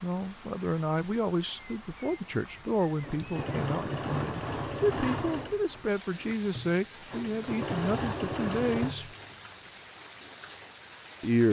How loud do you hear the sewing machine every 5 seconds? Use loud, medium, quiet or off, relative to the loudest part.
loud, loud, off.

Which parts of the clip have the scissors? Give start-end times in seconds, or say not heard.
not heard.